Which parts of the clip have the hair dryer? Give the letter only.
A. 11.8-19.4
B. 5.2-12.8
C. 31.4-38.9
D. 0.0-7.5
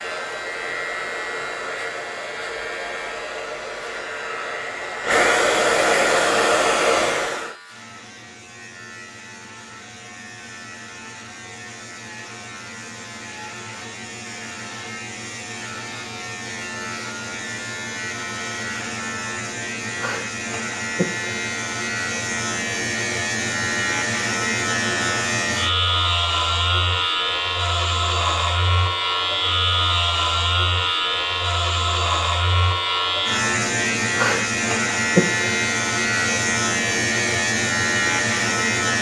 D.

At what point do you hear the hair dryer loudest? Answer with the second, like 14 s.
6 s.